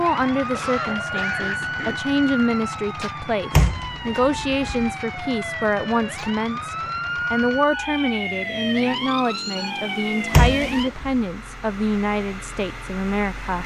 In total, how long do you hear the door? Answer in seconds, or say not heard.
2 s.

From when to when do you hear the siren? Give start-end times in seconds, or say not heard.
0.0-10.9.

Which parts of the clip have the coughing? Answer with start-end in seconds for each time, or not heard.
0.5-2.0.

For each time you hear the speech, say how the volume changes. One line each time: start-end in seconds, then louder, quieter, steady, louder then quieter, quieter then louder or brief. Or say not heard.
0.0-13.6 steady.